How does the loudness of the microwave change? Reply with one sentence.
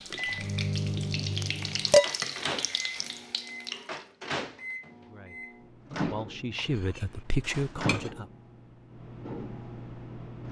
The loudness of the microwave goes down.